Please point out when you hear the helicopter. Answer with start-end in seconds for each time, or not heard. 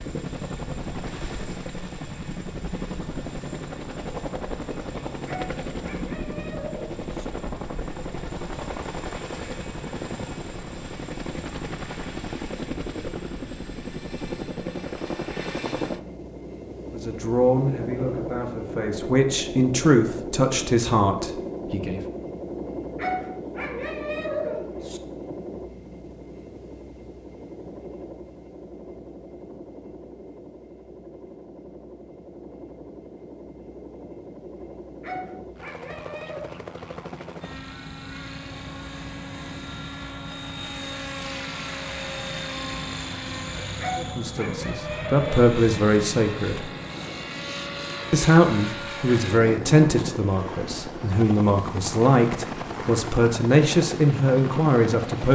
0.0-55.3.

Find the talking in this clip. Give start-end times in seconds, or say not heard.
16.9-22.0, 44.0-46.7, 48.1-55.3.